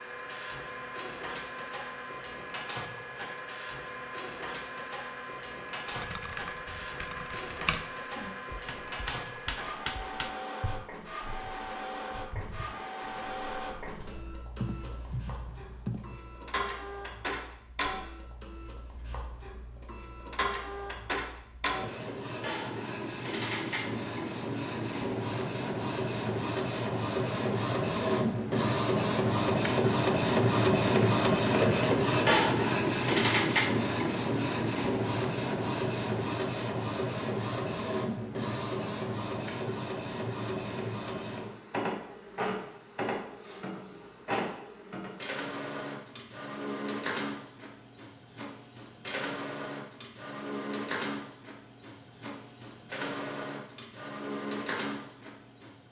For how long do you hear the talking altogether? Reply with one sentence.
The talking can't be heard in this clip.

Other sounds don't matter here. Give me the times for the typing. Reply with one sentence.
The typing can be heard from 5.9 to 16.1 s.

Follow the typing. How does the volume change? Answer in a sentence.
The loudness of the typing goes down, then up.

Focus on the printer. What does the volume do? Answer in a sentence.
The loudness of the printer goes up, then down.